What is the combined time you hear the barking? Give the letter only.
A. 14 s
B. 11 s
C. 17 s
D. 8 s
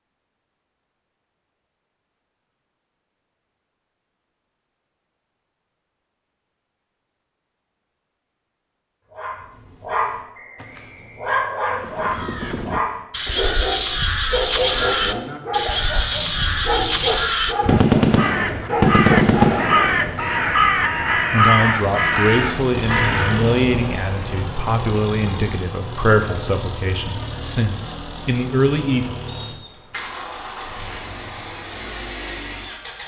B.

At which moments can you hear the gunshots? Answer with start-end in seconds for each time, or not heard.
17.6-20.1.